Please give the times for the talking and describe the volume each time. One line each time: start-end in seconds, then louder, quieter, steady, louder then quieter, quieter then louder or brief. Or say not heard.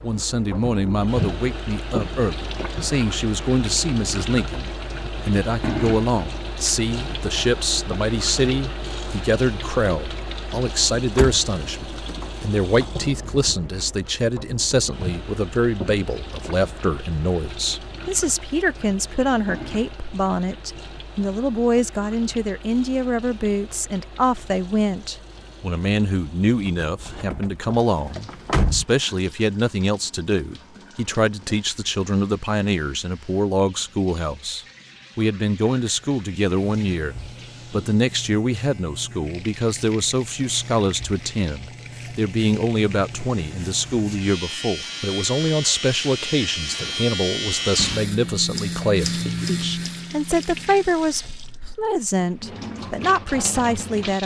0.0-54.2 steady.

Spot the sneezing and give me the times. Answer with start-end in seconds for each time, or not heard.
not heard.